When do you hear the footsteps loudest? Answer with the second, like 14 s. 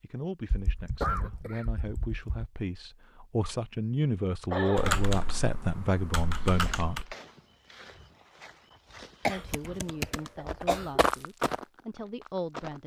11 s.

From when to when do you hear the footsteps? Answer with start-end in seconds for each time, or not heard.
6.5-12.8.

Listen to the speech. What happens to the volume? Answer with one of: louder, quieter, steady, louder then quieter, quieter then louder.
louder then quieter.